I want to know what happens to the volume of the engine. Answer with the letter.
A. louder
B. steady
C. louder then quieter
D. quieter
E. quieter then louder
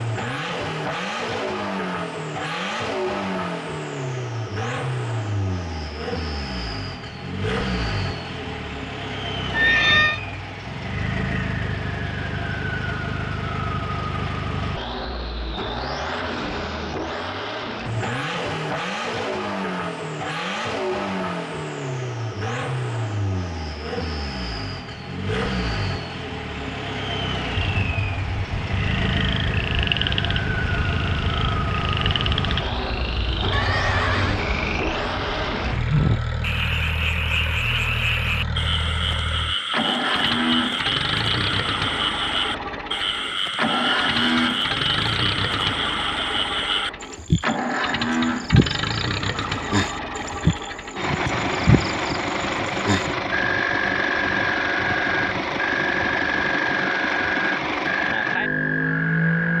B.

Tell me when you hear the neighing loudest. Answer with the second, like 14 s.
10 s.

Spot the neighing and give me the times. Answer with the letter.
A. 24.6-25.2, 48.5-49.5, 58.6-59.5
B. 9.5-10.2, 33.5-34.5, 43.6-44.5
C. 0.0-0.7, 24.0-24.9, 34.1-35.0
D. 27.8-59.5
B.